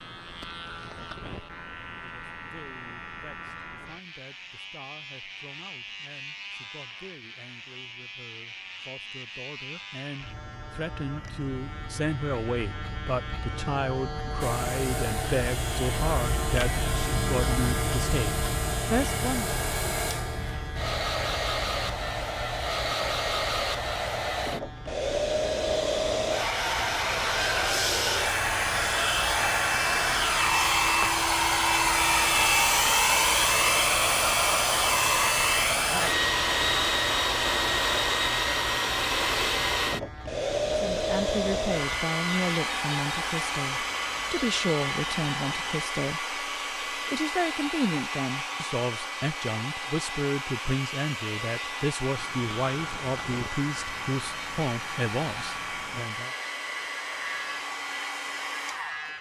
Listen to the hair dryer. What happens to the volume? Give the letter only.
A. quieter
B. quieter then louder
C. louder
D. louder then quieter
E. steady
D.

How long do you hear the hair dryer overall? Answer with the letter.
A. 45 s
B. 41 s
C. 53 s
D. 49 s
A.